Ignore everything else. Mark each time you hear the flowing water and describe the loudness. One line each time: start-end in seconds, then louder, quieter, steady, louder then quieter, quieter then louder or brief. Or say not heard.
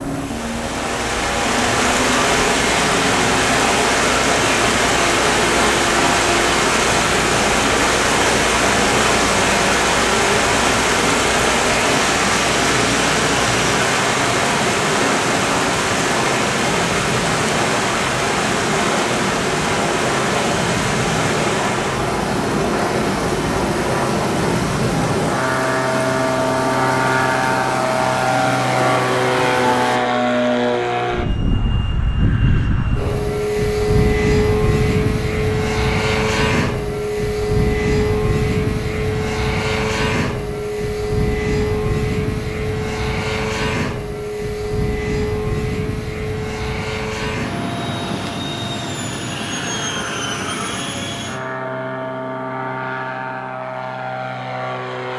0.0-30.0 quieter.